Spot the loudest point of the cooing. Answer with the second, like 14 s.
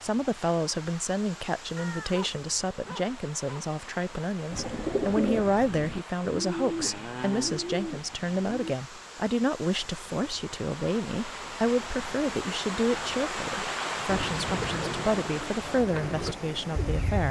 5 s.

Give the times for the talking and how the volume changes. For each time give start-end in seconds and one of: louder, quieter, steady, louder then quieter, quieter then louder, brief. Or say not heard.
0.0-17.2 steady.